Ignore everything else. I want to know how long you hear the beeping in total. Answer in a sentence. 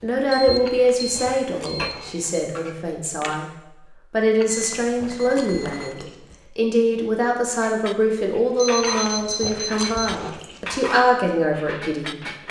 The beeping can be heard for 5 seconds in total.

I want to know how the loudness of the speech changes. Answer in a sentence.
The volume of the speech stays about the same.